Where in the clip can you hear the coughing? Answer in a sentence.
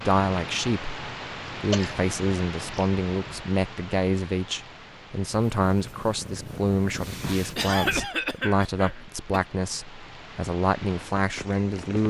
The coughing can be heard from 1.6 to 2.9 s and from 7.5 to 9.4 s.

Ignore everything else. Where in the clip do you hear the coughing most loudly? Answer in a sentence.
The volume of the coughing peaks at 8 seconds.